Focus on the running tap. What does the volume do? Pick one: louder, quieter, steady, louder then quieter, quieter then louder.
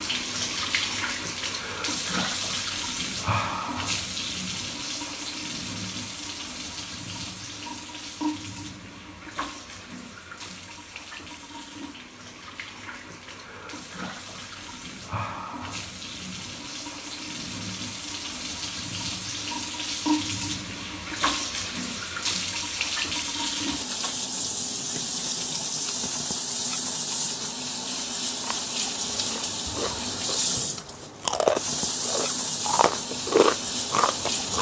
quieter then louder.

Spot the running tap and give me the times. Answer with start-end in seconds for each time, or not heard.
0.0-34.5.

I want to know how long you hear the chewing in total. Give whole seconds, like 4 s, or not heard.
6 s.